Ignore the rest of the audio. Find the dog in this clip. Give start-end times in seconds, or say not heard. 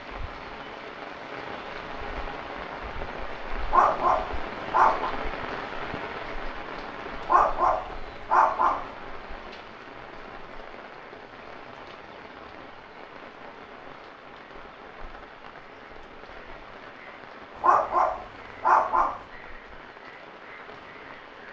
3.6-5.2, 7.2-8.8, 17.6-19.2.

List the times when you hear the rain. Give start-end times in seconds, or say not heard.
0.0-21.4.